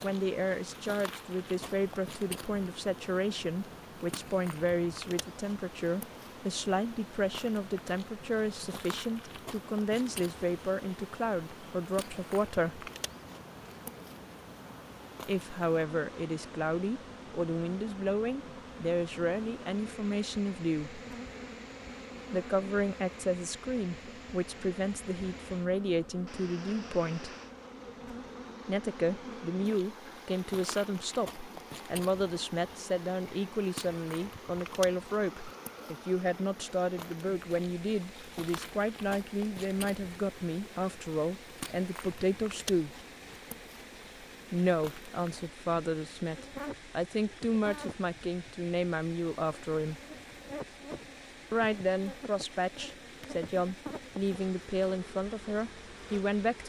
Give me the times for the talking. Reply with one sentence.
The talking can be heard from 0.0 to 12.9 s, from 15.2 to 21.0 s, from 22.3 to 27.4 s, from 28.6 to 43.0 s, from 44.5 to 50.0 s and from 51.5 to 56.6 s.